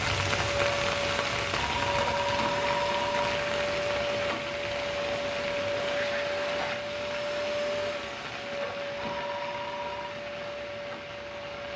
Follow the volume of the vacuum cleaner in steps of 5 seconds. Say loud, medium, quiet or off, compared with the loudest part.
loud, loud, medium.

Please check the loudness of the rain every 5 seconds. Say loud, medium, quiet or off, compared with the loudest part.
loud, medium, medium.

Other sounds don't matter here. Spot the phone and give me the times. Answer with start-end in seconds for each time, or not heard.
1.6-3.2, 9.0-10.1.